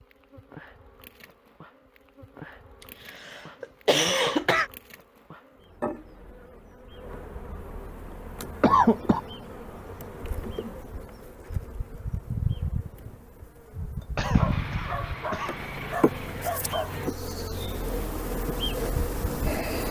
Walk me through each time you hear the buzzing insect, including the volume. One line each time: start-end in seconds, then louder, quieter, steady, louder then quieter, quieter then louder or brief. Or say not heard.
0.0-19.8 louder.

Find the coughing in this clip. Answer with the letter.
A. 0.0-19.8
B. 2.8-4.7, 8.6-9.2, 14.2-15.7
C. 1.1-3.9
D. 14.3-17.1
B.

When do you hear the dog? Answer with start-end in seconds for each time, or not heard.
14.3-17.1.